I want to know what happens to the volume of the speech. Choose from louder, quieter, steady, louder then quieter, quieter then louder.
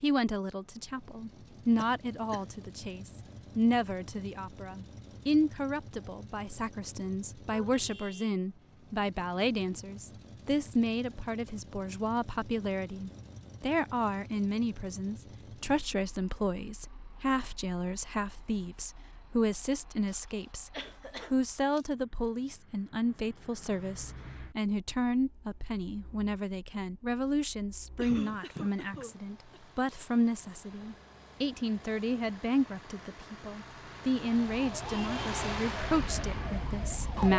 steady.